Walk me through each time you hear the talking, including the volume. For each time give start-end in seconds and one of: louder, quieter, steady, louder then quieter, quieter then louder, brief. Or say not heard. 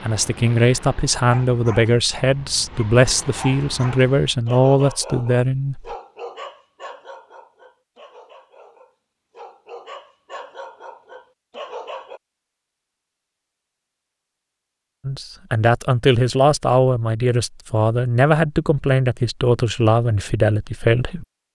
0.0-5.8 steady
15.1-21.2 steady.